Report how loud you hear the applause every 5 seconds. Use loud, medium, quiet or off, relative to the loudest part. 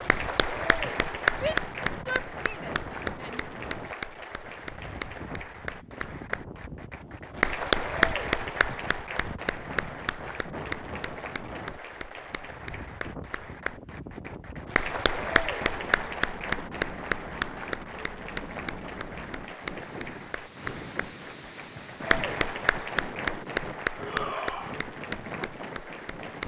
loud, loud, medium, loud, loud, medium.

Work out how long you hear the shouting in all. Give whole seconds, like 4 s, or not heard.
3 s.